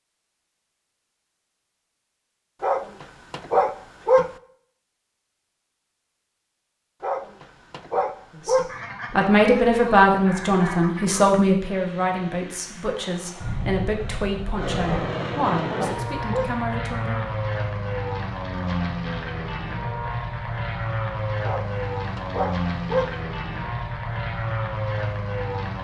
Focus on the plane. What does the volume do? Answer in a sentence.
The loudness of the plane goes up.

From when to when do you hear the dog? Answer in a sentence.
The dog can be heard from 2.6 to 4.3 s, from 7.0 to 8.7 s, from 14.8 to 16.6 s and from 21.4 to 23.1 s.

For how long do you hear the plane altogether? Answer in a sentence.
The plane can be heard for 14 seconds in total.